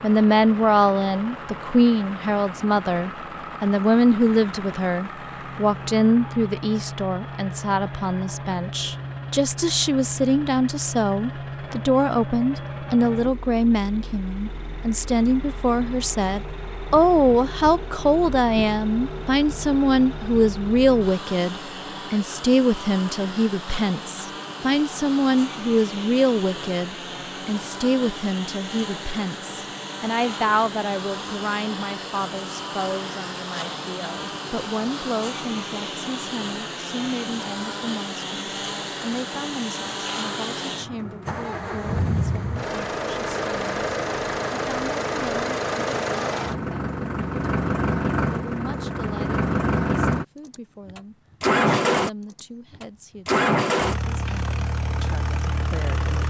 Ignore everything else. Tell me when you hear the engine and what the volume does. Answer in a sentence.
You can hear the engine from 0.0 to 56.2 s, getting louder.